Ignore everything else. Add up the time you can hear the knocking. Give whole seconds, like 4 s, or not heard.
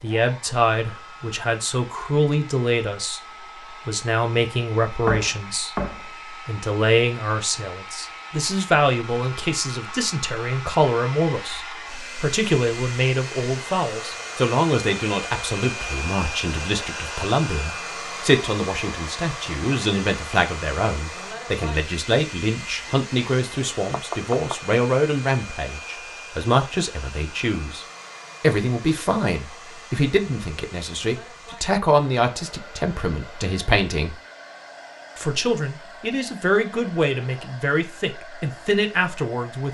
2 s.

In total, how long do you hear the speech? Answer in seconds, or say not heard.
38 s.